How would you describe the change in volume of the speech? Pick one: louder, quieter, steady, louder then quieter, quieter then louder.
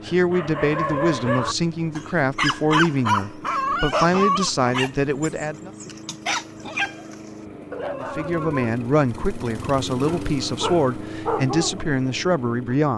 steady.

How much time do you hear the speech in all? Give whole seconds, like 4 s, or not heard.
11 s.